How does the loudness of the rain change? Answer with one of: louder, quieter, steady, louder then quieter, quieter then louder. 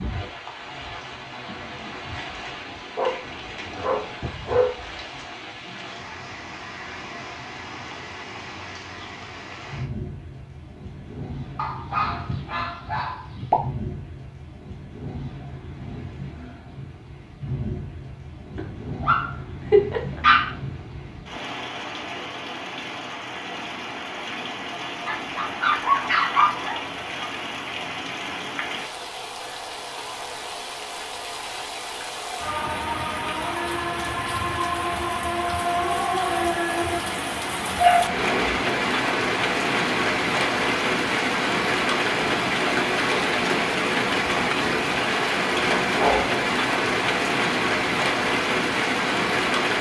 louder.